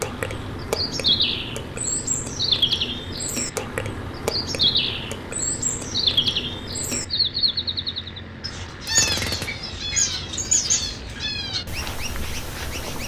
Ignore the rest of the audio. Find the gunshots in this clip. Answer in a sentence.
You can hear the gunshots from 8.8 to 9.8 s.